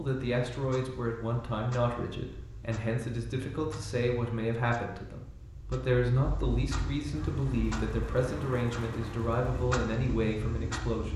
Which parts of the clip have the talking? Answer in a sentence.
You can hear the talking from 0.0 to 11.1 s.